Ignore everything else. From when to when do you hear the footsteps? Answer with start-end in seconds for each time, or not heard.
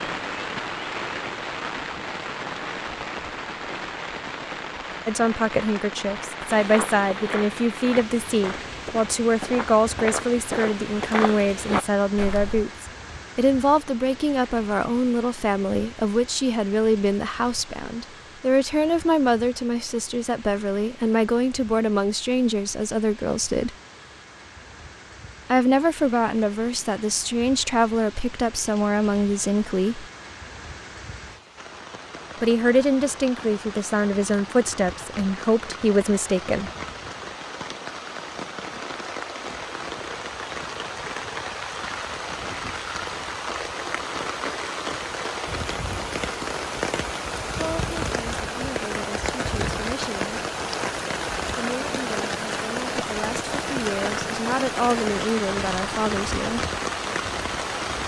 6.5-12.7.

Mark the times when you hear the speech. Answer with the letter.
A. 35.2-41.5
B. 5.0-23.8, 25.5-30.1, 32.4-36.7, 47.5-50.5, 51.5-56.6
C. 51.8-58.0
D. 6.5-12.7
B.